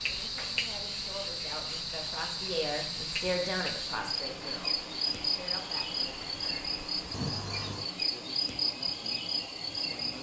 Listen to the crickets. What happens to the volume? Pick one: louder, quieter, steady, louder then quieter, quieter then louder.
steady.